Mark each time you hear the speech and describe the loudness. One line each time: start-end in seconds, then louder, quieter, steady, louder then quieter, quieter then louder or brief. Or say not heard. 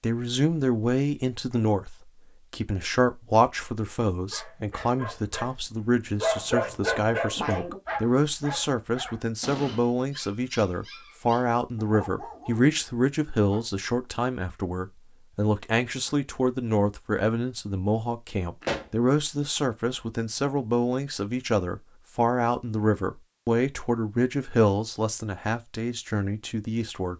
0.0-27.1 steady.